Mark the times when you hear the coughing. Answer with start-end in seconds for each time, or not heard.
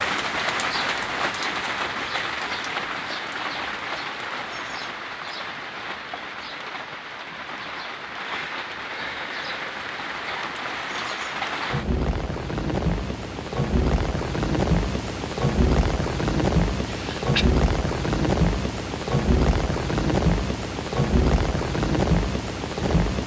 16.9-17.5.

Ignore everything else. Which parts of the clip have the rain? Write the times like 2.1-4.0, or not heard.
0.0-23.2.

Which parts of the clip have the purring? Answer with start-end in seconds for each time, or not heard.
not heard.